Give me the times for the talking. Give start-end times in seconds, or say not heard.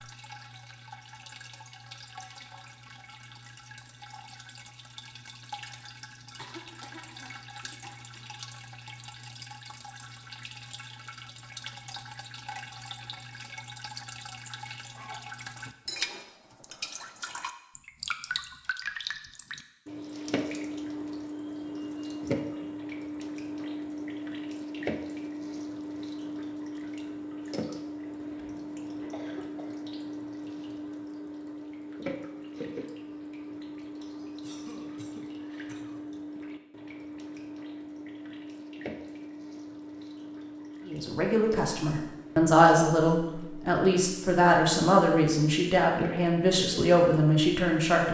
40.9-48.0.